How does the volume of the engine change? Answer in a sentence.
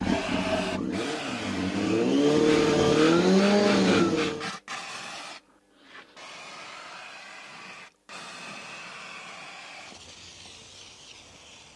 The loudness of the engine goes up.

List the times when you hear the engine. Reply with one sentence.
The engine can be heard from 0.0 to 4.5 s.